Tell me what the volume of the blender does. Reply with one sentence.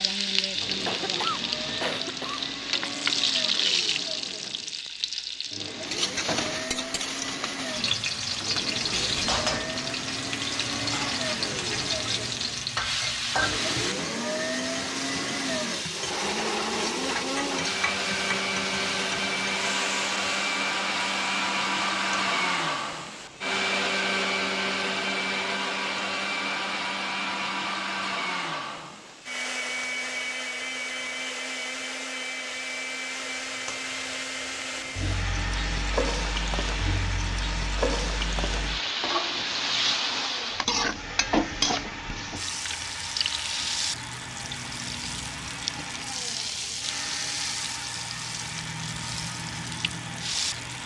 The volume of the blender goes up, then down.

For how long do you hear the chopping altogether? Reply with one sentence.
The chopping can't be heard in this clip.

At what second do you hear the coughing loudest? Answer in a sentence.
The volume of the coughing peaks at 1 second.